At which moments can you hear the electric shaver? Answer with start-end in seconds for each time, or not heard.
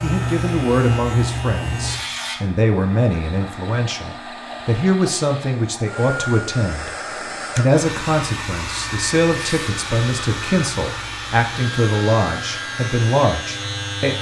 0.0-2.4, 9.3-14.1.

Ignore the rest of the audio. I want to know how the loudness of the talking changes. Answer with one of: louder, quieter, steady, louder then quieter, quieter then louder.
steady.